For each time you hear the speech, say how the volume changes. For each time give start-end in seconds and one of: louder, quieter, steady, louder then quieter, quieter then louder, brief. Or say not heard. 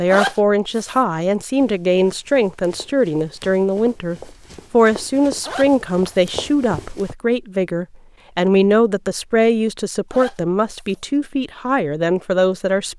0.0-12.9 steady.